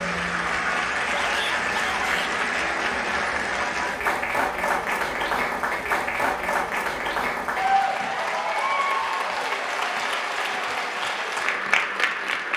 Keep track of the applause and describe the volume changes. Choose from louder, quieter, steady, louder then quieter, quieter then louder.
steady.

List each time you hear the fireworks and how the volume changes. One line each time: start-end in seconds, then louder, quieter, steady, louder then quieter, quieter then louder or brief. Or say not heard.
not heard.